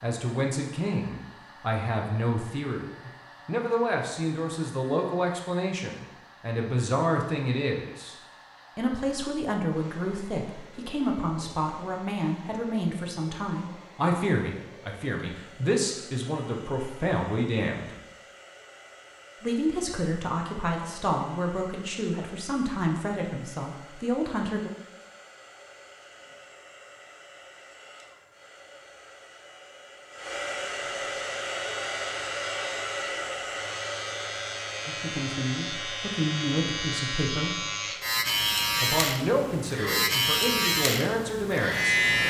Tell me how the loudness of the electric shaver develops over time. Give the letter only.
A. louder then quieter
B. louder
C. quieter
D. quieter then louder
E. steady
B.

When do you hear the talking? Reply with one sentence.
You can hear the talking from 0.0 to 8.2 s, from 8.8 to 17.9 s, from 19.4 to 24.7 s, from 34.9 to 37.6 s and from 38.8 to 42.0 s.